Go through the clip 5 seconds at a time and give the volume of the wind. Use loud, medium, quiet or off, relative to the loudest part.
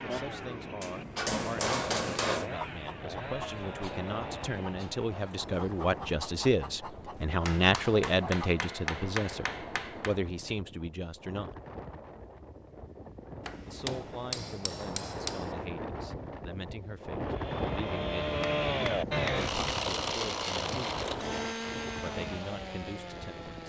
medium, medium, medium, loud, loud.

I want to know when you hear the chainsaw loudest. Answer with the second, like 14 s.
19 s.